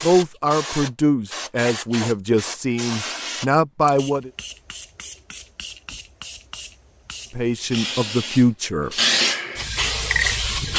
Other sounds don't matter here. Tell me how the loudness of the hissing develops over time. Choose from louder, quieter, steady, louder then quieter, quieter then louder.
quieter then louder.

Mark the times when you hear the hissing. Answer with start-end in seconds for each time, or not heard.
0.0-10.7.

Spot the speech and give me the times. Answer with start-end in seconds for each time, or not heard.
0.0-4.3, 7.3-8.9.